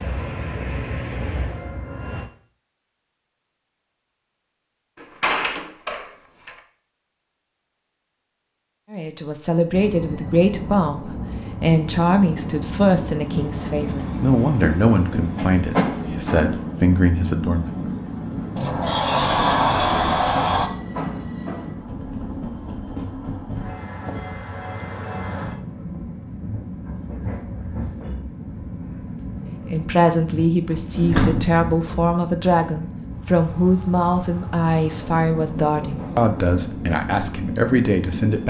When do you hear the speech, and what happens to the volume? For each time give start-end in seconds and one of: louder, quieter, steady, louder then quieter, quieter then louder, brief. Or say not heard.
8.9-17.9 steady
29.6-38.4 steady.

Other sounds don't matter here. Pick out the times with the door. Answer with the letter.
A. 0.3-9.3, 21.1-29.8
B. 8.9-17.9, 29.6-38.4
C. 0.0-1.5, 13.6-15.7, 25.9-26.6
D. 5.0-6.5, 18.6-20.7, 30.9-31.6
D.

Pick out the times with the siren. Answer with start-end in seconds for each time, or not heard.
not heard.